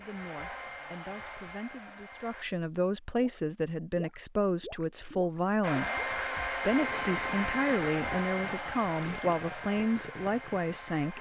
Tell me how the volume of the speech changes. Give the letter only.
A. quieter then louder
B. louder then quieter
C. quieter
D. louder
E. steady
D.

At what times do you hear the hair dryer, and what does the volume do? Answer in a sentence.
You can hear the hair dryer briefly from 0.0 to 2.5 s; and from 5.6 to 11.1 s, getting quieter.